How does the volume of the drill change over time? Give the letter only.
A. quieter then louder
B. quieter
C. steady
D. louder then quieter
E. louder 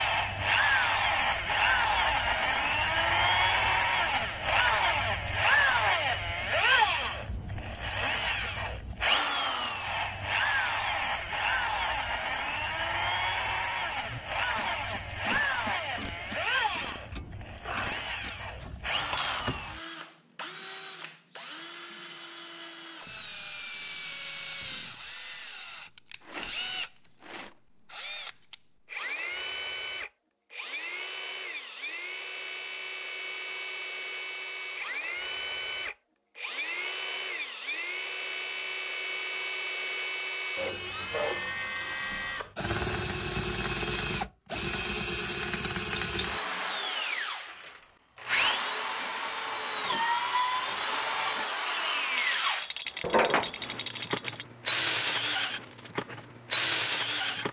A.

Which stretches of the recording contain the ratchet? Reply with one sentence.
You can hear the ratchet from 14.1 to 19.9 s.